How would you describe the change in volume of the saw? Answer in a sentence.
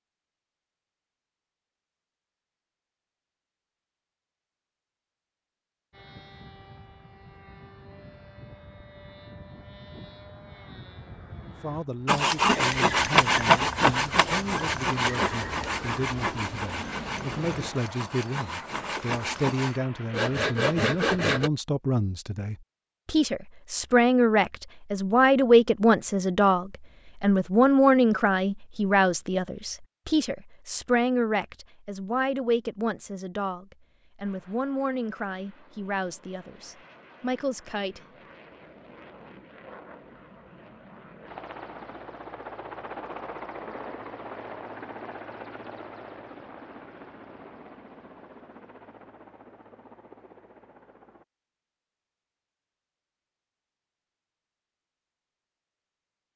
The loudness of the saw goes down, then up.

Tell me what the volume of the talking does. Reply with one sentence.
The volume of the talking goes up, then down.